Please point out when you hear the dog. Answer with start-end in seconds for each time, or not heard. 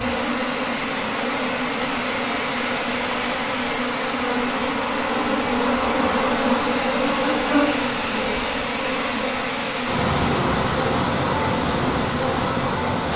not heard.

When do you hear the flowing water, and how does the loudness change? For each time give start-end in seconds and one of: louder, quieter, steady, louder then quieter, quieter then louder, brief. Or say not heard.
0.0-13.1 steady.